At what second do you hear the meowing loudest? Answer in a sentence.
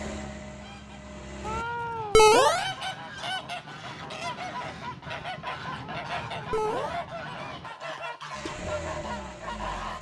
The volume of the meowing peaks at 2 seconds.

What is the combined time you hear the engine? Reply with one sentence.
You can hear the engine for 3 seconds altogether.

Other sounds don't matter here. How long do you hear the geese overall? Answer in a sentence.
You can hear the geese for 9 seconds altogether.